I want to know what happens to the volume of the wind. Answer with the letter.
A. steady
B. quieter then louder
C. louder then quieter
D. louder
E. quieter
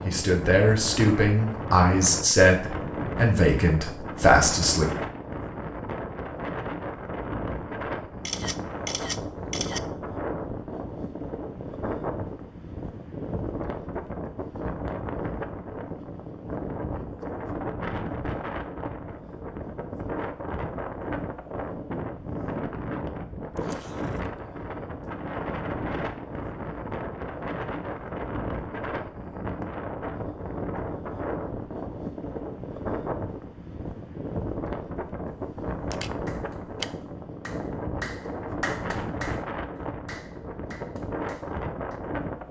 A.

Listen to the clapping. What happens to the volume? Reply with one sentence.
The volume of the clapping goes up, then down.